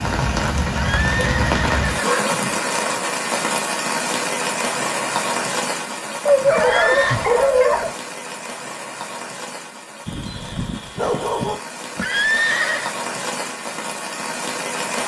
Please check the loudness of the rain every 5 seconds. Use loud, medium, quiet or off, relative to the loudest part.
loud, medium, medium.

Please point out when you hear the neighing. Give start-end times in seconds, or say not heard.
0.9-2.6, 6.5-7.2, 11.9-12.9.